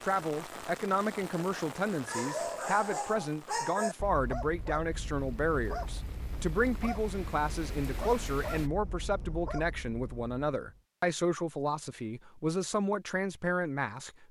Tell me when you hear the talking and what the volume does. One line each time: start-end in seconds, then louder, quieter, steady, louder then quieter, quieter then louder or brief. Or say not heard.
0.0-14.2 steady.